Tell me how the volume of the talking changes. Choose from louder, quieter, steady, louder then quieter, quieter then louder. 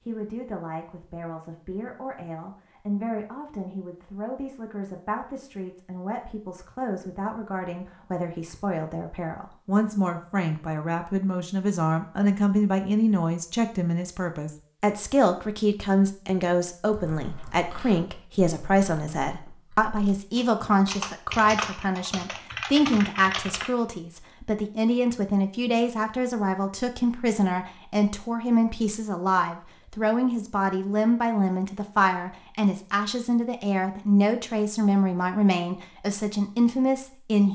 louder.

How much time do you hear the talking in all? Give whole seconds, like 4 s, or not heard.
37 s.